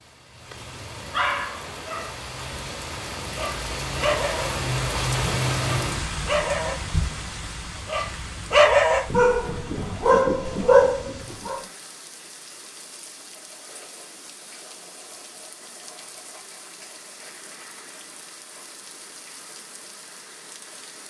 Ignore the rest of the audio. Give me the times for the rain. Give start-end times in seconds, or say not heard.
0.0-21.0.